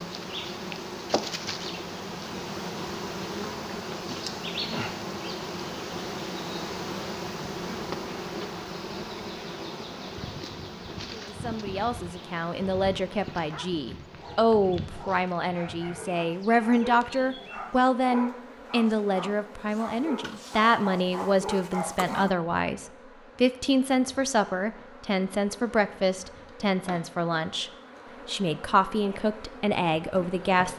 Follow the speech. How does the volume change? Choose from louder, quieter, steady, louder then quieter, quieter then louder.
steady.